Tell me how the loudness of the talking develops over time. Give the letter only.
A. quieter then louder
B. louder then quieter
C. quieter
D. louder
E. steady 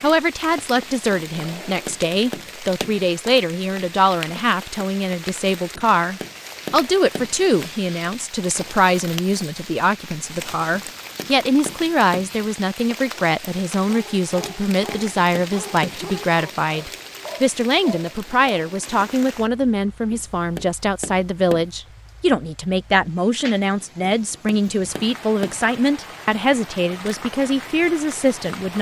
E.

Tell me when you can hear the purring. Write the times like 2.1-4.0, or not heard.
not heard.